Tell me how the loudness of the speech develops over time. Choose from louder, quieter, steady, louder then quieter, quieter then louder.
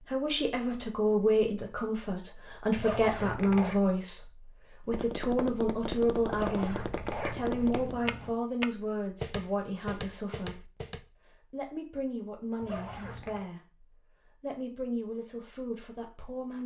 quieter.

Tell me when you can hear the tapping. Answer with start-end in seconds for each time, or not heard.
4.8-11.0.